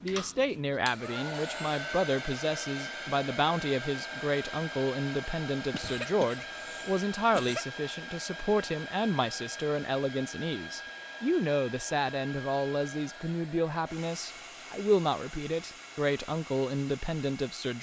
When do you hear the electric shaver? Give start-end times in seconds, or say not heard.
not heard.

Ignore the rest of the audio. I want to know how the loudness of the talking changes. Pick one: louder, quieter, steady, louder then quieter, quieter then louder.
steady.